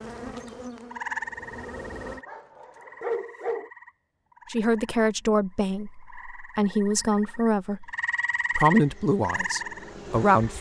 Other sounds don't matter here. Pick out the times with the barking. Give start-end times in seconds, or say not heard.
2.0-3.7.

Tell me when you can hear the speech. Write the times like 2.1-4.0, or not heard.
4.5-7.9, 8.6-10.5.